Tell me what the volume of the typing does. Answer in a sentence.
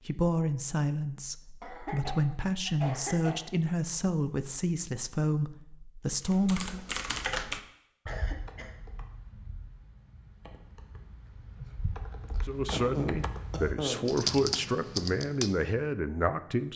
The volume of the typing goes down, then up.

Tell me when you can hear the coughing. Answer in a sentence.
You can hear the coughing from 1.6 to 3.4 s, from 8.1 to 8.8 s and from 12.7 to 14.1 s.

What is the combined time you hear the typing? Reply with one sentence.
The typing can be heard for 9 seconds in total.